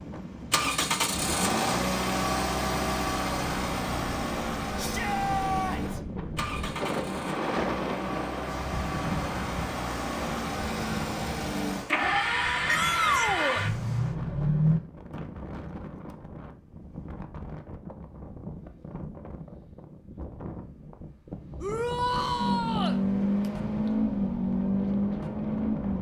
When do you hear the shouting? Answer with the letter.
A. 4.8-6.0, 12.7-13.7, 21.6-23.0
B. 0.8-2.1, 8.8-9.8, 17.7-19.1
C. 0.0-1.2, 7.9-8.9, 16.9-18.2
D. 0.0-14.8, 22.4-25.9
A.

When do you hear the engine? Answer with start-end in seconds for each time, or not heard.
0.0-14.8, 22.4-25.9.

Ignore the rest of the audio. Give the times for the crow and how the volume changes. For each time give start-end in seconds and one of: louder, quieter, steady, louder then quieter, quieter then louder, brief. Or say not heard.
not heard.